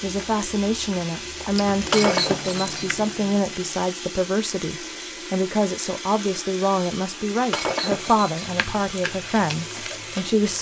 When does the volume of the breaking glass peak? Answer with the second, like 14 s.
2 s.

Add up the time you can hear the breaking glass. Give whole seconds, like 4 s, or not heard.
2 s.